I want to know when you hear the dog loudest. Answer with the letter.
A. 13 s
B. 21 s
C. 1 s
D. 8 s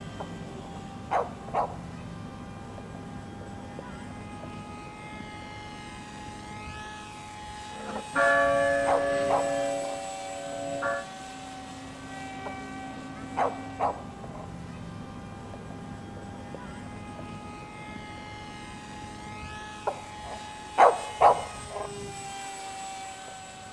B.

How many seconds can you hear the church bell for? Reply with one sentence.
You can hear the church bell for 3 seconds altogether.